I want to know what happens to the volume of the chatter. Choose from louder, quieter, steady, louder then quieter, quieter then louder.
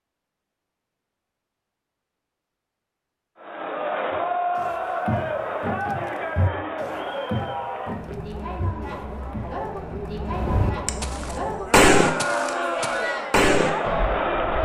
quieter then louder.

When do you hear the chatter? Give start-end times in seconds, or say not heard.
3.4-14.5.